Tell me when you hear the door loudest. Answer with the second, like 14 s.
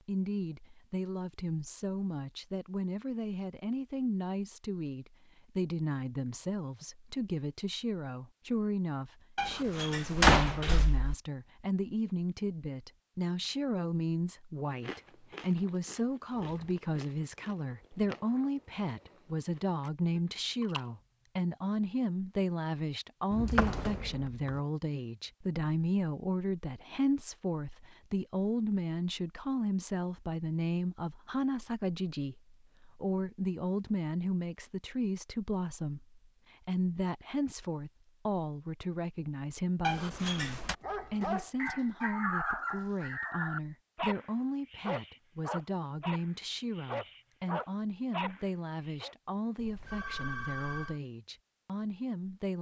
10 s.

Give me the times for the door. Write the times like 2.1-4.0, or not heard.
9.3-11.2, 23.3-24.6, 39.8-40.8.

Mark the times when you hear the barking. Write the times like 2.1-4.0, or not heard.
40.6-49.1.